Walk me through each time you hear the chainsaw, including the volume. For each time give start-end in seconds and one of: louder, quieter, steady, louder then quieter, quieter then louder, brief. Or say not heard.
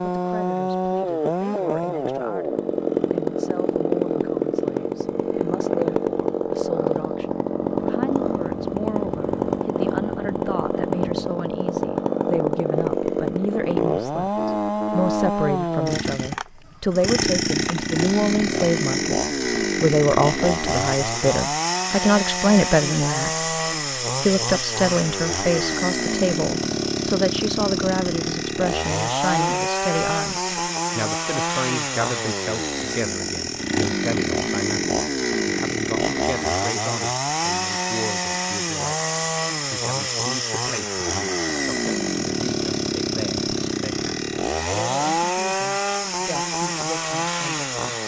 0.0-48.0 steady.